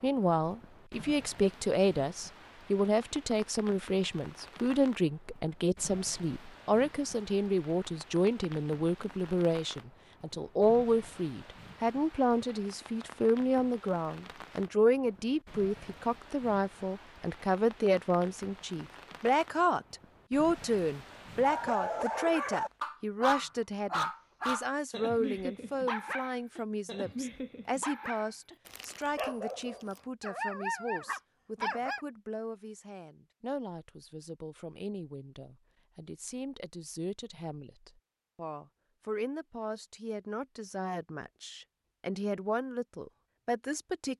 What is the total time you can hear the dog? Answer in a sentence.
You can hear the dog for 11 seconds altogether.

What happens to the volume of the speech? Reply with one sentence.
The loudness of the speech goes down.